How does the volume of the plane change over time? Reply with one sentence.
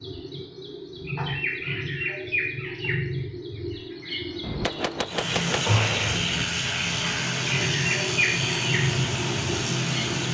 The volume of the plane stays about the same.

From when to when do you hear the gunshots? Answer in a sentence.
You can hear the gunshots from 4.4 to 6.5 s.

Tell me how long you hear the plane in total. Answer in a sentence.
You can hear the plane for 5 seconds altogether.